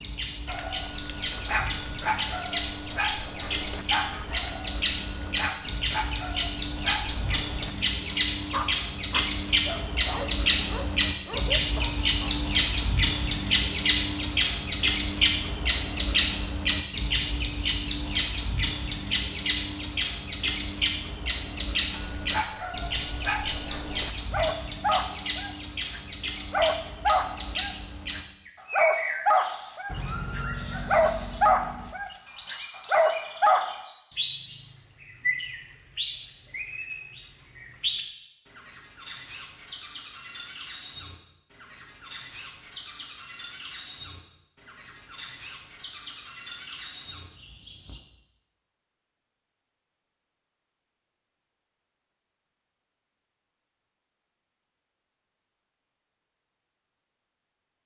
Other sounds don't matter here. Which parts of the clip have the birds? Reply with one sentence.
The birds can be heard from 0.0 to 48.0 s.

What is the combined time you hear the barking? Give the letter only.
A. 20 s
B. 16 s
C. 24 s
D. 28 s
C.